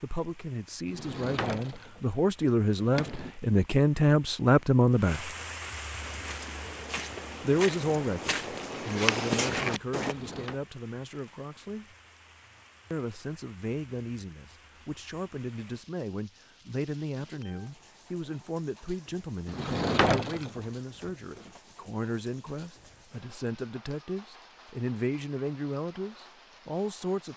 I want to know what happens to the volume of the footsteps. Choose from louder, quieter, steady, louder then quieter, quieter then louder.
louder.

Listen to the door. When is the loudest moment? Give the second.
20 s.